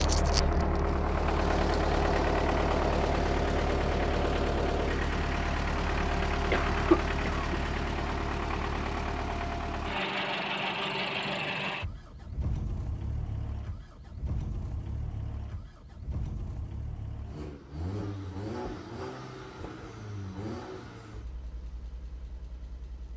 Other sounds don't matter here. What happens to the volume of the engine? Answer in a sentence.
The volume of the engine goes down.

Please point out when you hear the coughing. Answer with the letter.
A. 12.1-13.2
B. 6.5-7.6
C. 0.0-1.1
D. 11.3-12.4
B.